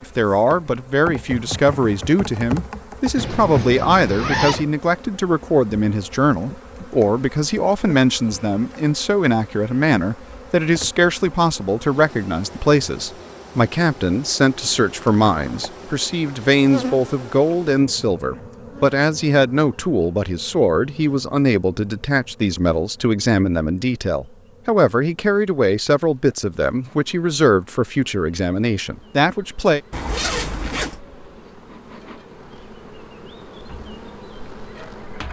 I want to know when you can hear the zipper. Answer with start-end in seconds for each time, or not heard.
3.1-4.7, 15.1-15.6, 29.9-31.0.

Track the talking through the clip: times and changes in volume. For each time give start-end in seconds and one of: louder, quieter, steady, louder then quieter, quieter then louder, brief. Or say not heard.
0.0-29.8 steady.